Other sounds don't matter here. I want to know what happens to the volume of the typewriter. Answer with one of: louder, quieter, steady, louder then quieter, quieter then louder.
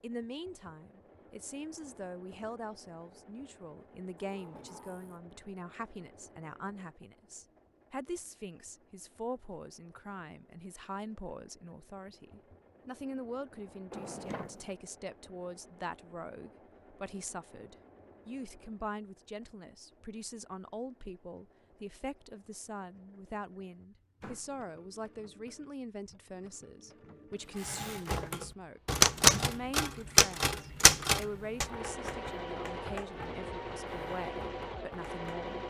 quieter.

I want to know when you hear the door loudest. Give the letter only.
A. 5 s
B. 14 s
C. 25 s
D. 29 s
B.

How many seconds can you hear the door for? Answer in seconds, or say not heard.
2 s.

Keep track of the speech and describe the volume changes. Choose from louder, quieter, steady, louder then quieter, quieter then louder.
steady.